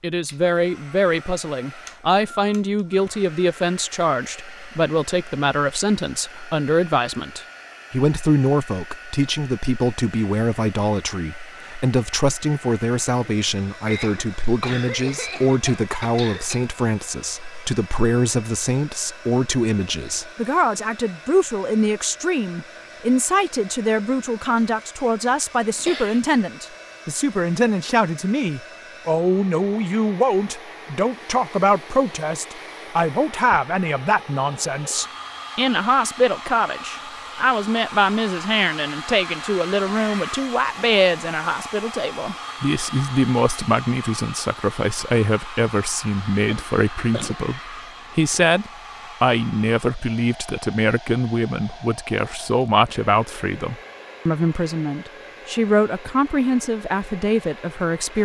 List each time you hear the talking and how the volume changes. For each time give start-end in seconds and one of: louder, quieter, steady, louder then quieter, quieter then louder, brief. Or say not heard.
0.0-58.2 steady.